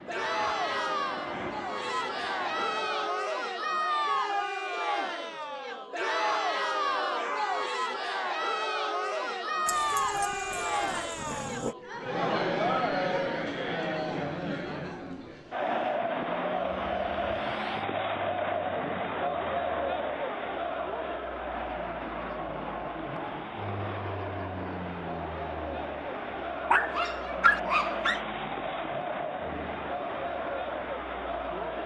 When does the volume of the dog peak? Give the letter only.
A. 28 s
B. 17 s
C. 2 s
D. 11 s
A.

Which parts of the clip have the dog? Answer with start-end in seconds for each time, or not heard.
9.7-11.8, 26.7-28.2.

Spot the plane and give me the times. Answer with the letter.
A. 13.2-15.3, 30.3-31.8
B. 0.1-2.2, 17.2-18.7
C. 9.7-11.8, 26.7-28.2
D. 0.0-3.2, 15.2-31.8
D.